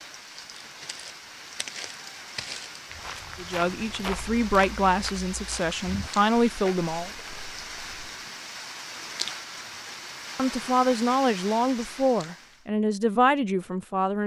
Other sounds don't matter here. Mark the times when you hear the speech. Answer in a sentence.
The speech can be heard from 3.4 to 7.1 s and from 10.3 to 14.2 s.